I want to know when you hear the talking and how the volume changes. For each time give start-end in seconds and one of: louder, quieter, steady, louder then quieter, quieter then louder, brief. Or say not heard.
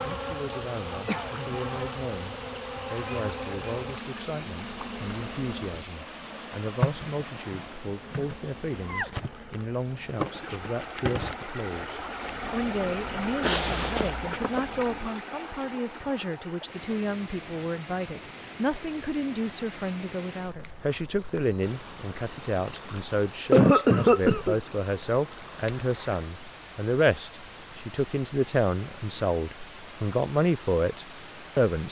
0.0-31.8 louder.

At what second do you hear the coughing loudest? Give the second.
24 s.